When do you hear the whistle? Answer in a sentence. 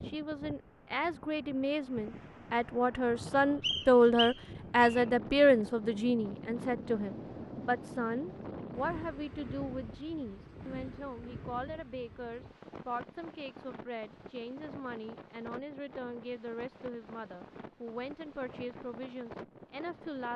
You can hear the whistle from 3.6 to 5.0 s.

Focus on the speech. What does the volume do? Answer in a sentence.
The volume of the speech goes down.